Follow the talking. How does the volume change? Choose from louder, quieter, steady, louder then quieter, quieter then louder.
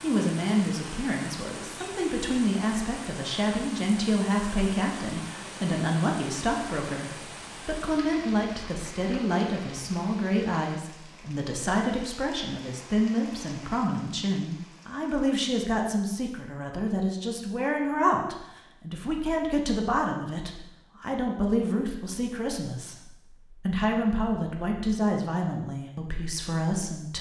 steady.